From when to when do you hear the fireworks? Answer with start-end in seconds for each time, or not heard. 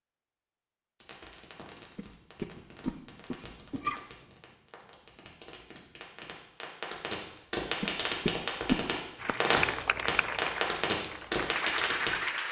1.0-12.1.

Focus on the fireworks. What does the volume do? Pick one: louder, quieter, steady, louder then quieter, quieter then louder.
louder.